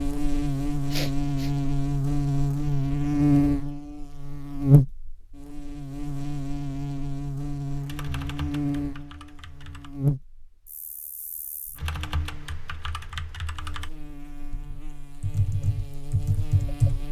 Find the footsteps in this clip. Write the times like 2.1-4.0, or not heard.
not heard.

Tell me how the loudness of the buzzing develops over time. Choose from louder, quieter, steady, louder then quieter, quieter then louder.
quieter.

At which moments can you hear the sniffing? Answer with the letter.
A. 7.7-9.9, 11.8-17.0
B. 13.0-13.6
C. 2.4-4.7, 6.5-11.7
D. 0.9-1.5
D.